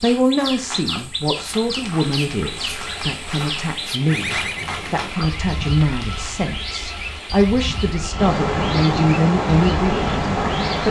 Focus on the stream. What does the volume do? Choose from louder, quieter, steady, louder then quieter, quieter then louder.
louder.